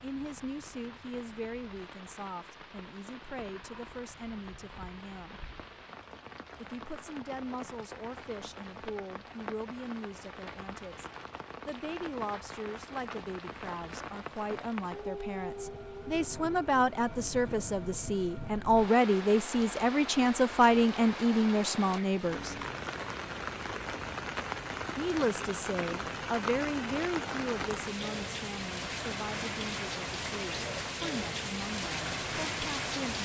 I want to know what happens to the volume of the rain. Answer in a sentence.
The volume of the rain goes up.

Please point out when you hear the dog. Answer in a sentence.
You can't hear the dog here.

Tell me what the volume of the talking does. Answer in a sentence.
The volume of the talking goes up, then down.